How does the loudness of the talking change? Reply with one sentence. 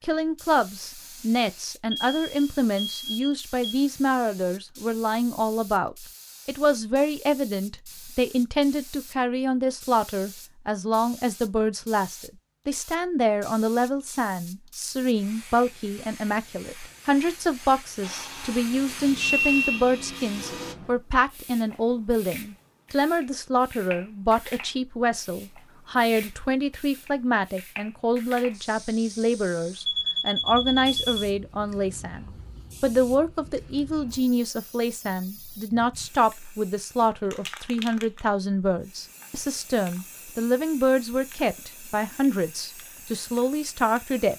The volume of the talking stays about the same.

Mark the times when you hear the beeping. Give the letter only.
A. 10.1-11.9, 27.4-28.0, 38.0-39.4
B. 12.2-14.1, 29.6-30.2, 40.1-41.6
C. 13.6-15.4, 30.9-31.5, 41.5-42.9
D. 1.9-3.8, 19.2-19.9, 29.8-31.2
D.